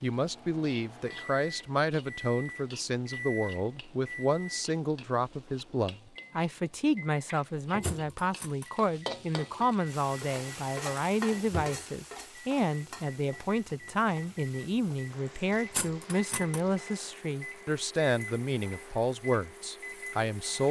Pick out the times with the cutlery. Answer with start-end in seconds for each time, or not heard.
7.8-8.7, 15.7-16.6.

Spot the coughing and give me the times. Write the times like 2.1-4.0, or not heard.
not heard.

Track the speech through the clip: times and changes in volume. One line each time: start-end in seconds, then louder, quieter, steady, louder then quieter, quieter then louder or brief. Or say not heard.
0.0-20.6 steady.